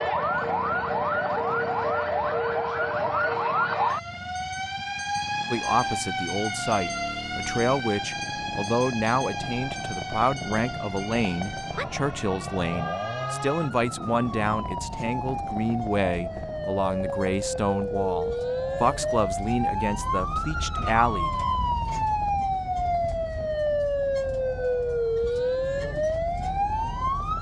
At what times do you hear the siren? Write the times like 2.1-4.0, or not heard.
0.0-27.3.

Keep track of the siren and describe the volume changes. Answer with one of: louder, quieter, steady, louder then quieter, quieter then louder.
quieter then louder.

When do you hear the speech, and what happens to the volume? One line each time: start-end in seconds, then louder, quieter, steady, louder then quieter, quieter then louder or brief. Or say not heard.
5.5-21.3 steady.